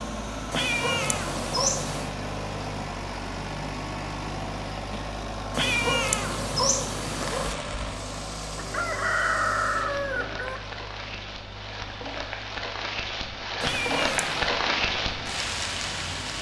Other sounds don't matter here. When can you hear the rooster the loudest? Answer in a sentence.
The loudest moment of the rooster is at 9 seconds.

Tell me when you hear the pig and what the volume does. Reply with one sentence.
You can't hear the pig here.